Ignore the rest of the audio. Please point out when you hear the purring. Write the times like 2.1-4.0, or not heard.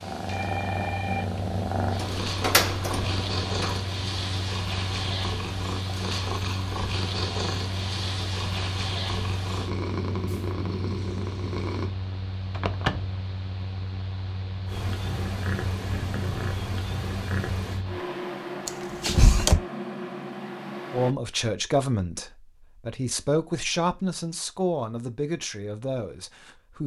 0.0-11.9, 14.7-17.9.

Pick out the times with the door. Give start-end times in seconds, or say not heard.
1.9-3.8, 12.5-13.2, 18.6-19.6.